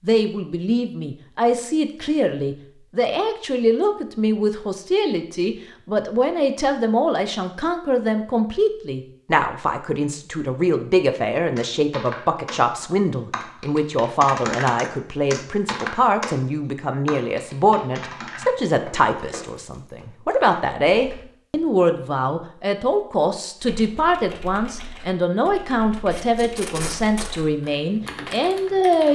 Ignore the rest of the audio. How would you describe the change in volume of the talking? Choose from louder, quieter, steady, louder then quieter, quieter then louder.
steady.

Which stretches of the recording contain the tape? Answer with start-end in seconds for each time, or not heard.
26.1-27.4.